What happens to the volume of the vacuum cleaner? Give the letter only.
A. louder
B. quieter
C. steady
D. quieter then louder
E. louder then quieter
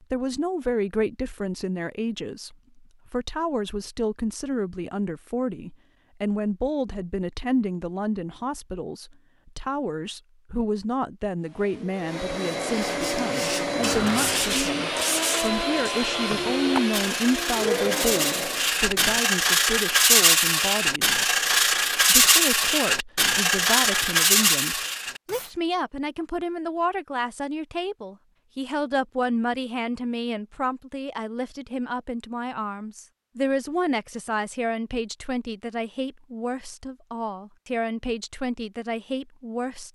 C.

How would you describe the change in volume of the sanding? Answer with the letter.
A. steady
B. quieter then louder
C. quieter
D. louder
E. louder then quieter
D.